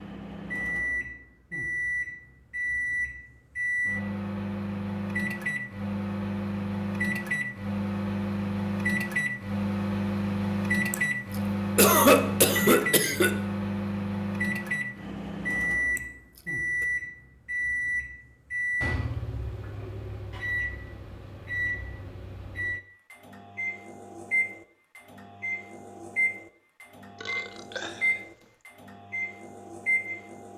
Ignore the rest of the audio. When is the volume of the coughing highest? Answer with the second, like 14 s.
12 s.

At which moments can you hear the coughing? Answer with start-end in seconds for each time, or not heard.
11.8-13.3, 15.9-16.9.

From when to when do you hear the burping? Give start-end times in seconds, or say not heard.
27.1-28.6.